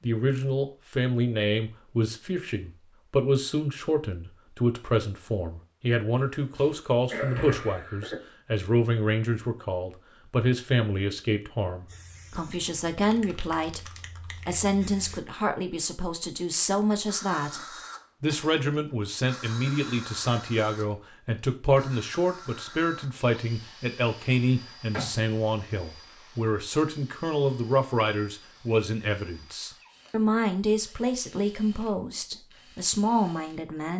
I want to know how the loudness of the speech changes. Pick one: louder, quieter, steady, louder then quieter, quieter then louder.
steady.